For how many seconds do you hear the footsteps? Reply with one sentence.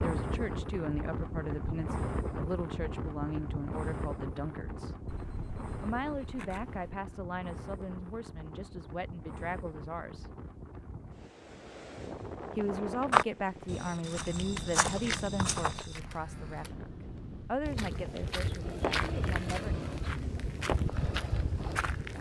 The footsteps can be heard for 7 seconds in total.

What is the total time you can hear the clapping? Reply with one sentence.
The clapping can't be heard in this clip.